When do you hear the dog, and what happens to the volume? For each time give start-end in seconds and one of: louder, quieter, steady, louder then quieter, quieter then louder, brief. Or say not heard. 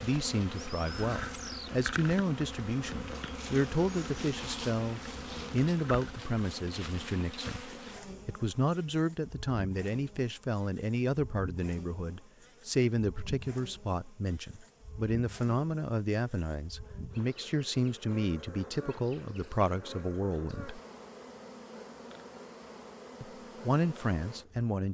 not heard.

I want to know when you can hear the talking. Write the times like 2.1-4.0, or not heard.
0.0-7.7, 8.2-20.8, 23.2-24.8.